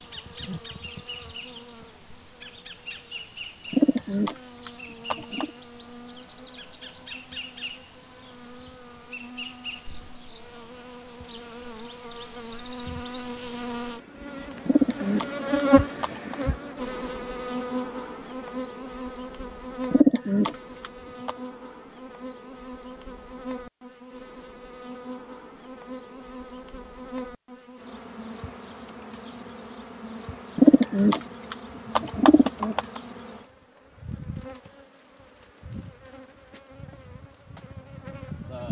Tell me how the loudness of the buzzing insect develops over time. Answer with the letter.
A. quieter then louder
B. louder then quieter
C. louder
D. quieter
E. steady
B.